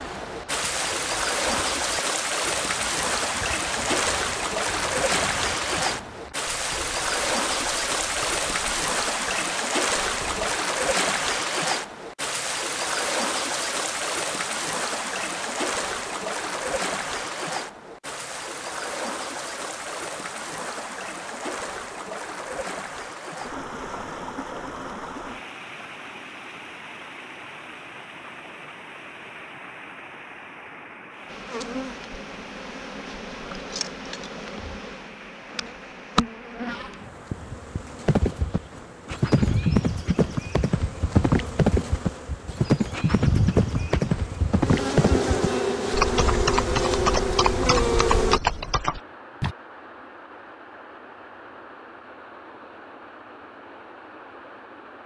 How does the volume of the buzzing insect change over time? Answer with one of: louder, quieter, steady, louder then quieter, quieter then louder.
louder.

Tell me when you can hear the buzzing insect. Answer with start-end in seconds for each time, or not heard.
31.2-48.4.